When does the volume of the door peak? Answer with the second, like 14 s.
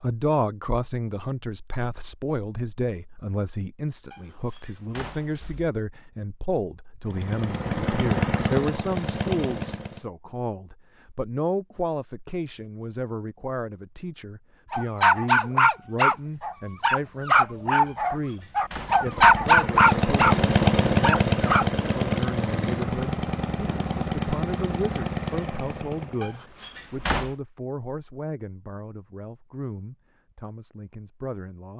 27 s.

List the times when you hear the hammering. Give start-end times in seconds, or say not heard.
not heard.